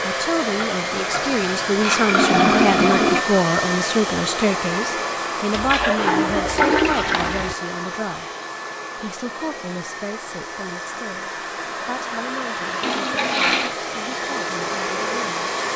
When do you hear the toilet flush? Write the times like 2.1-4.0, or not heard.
0.6-3.2, 5.5-7.5, 12.8-13.8.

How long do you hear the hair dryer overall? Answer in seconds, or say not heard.
16 s.